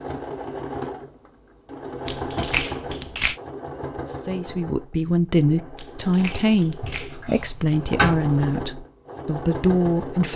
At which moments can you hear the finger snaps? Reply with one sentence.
The finger snaps can be heard from 2.0 to 3.4 s and from 5.8 to 7.2 s.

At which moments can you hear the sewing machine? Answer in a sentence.
The sewing machine can be heard from 0.0 to 10.3 s.